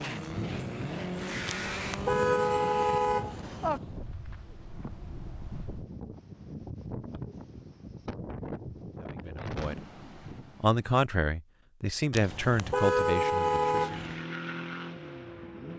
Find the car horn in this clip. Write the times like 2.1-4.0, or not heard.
1.4-3.8, 12.1-14.2.